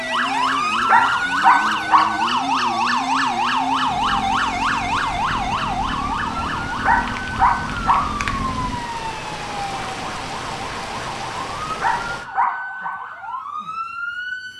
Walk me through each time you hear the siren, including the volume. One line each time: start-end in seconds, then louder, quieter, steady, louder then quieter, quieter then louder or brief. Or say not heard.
0.0-14.5 quieter.